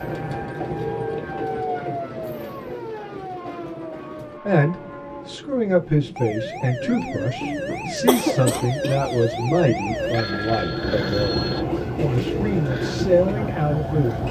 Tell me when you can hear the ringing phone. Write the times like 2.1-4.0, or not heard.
0.8-1.8, 10.1-11.6.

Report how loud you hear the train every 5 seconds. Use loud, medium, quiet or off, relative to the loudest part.
medium, medium, loud.